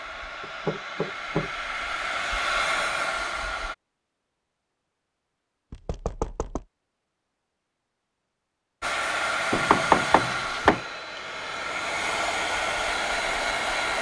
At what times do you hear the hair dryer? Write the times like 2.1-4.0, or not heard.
0.0-3.8, 8.8-13.9.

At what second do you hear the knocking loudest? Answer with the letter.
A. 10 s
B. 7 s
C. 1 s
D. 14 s
A.